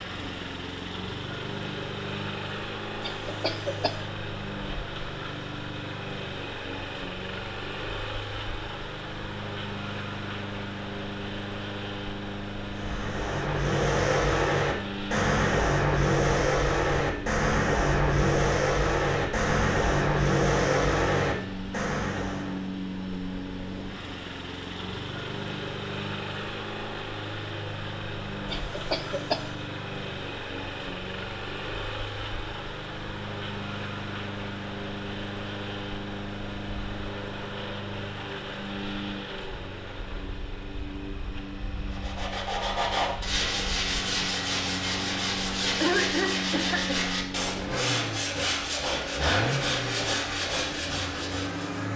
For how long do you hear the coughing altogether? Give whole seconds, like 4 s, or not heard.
3 s.